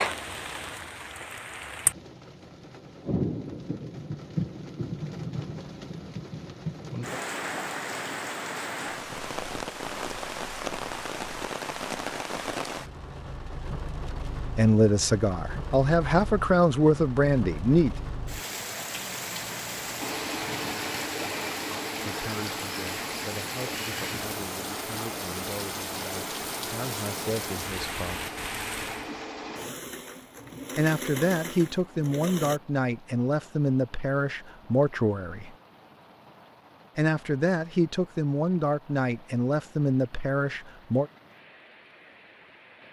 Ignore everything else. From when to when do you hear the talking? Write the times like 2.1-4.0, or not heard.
14.6-17.9, 22.0-28.2, 30.8-35.5, 37.0-41.1.